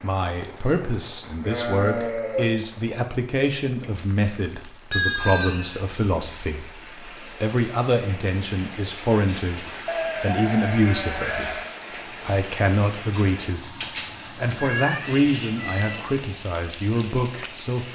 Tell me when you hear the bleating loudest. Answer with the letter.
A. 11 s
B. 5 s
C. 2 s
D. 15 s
B.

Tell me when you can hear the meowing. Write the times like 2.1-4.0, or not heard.
14.6-16.1.